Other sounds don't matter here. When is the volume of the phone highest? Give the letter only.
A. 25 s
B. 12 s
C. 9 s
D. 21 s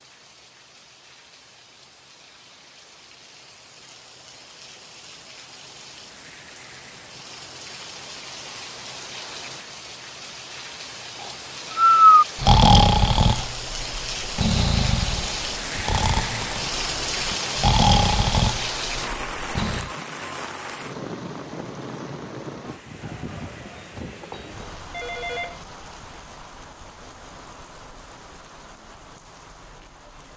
A.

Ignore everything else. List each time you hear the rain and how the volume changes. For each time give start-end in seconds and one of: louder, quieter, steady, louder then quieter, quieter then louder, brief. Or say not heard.
0.0-30.3 louder then quieter.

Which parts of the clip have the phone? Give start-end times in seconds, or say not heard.
23.8-25.6.